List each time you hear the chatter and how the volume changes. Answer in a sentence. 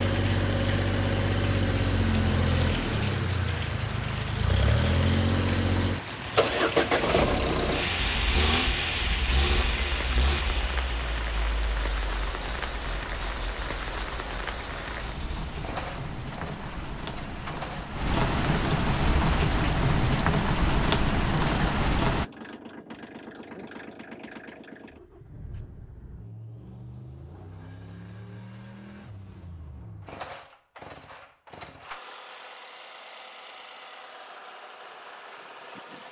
The chatter can't be heard in this clip.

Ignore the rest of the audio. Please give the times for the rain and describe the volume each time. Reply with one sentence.
The rain can be heard from 0.0 to 22.2 s, getting louder.